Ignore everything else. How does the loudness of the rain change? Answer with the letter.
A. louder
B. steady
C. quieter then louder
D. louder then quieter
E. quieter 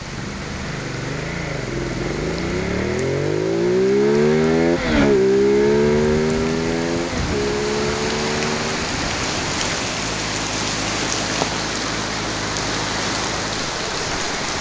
A.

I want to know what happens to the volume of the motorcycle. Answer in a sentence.
The volume of the motorcycle goes up, then down.